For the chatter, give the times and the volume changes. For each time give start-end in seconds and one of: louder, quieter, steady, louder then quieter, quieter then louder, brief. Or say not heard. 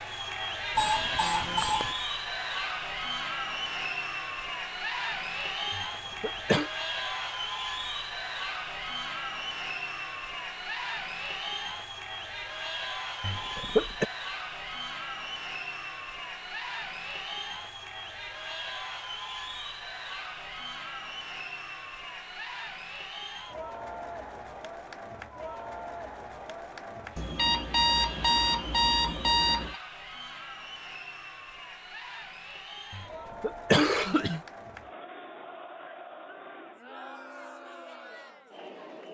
0.0-39.0 quieter.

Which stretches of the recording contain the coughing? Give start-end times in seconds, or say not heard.
5.7-6.7, 13.2-14.1, 32.9-34.4.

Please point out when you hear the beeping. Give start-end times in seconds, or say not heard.
0.8-1.9, 27.1-29.8.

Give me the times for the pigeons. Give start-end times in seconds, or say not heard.
not heard.